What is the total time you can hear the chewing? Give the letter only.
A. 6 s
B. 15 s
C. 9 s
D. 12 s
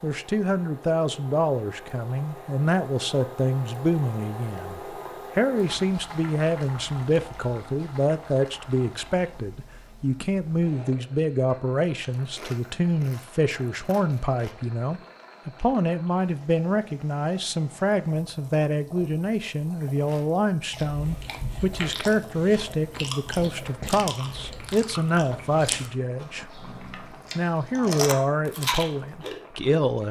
D.